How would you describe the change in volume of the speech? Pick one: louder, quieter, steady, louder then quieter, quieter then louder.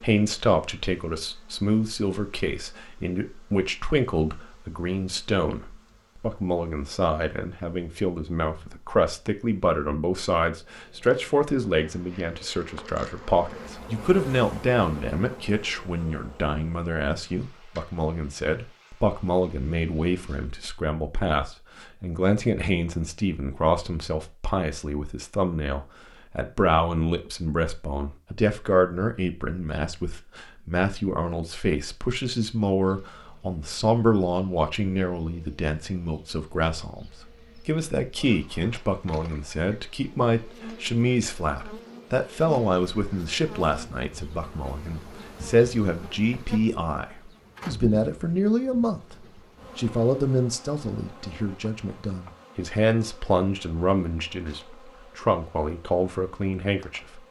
steady.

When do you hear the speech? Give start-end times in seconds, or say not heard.
0.0-57.2.